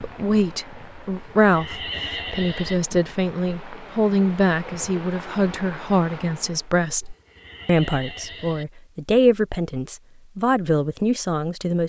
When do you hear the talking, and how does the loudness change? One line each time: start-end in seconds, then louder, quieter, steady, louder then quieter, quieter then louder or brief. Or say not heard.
0.0-11.8 steady.